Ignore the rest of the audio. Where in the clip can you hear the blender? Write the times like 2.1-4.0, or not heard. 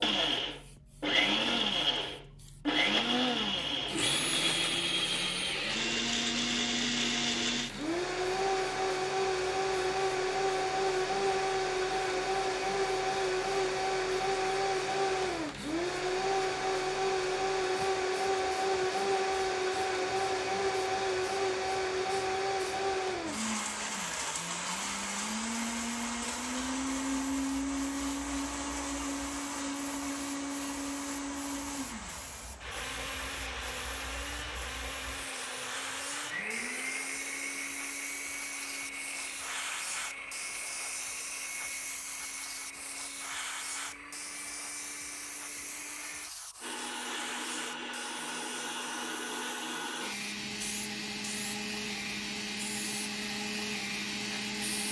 0.0-54.8.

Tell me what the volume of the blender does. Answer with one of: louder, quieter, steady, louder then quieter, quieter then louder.
quieter.